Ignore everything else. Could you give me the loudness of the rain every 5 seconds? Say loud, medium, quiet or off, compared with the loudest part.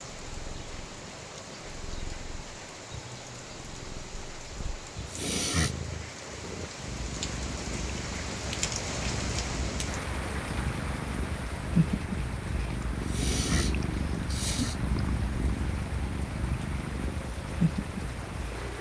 medium, loud, loud, medium.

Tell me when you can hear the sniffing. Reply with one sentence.
The sniffing can be heard from 5.0 to 5.8 s and from 12.8 to 14.8 s.